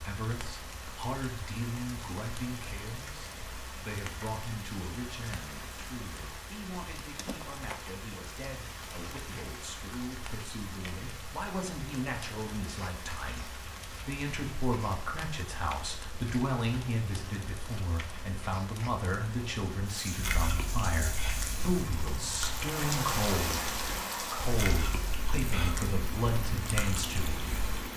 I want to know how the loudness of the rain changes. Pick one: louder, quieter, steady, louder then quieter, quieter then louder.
louder.